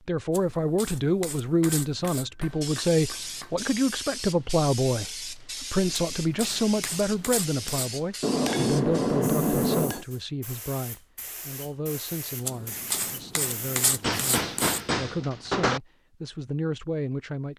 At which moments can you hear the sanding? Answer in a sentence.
The sanding can be heard from 0.3 to 2.2 s, from 5.9 to 8.0 s and from 12.4 to 14.8 s.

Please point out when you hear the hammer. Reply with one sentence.
The hammer can be heard from 1.6 to 3.5 s, from 8.2 to 10.1 s and from 14.0 to 15.8 s.